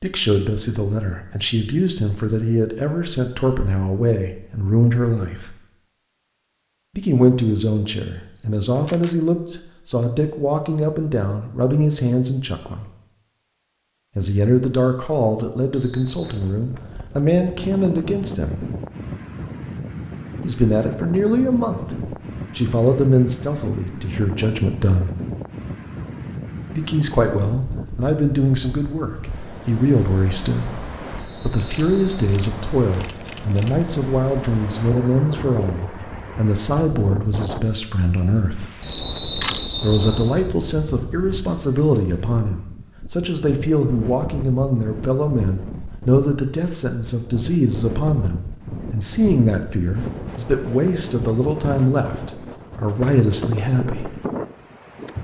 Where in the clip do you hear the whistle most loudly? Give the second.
39 s.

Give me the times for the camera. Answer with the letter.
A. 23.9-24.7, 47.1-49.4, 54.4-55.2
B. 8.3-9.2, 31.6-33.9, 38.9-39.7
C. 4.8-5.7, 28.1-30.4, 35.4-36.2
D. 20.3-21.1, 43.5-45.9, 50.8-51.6
B.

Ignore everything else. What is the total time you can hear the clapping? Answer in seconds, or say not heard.
not heard.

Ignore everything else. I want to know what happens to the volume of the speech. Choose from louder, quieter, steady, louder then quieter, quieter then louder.
steady.